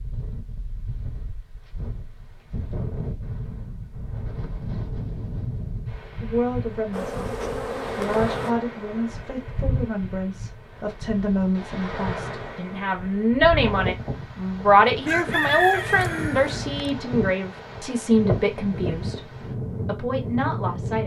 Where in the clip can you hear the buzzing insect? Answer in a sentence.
The buzzing insect can be heard from 6.9 to 8.6 s.